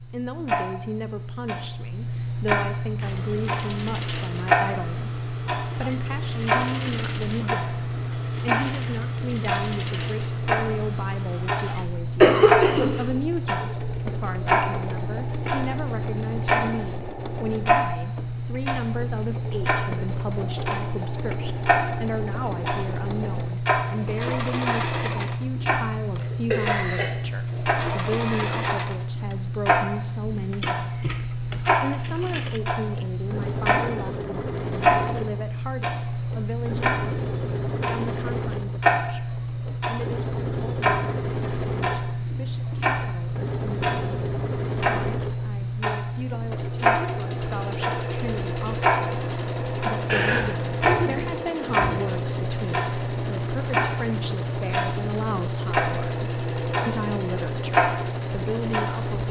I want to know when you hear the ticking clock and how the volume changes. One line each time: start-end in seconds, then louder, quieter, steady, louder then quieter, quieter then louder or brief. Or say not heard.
0.0-59.2 steady.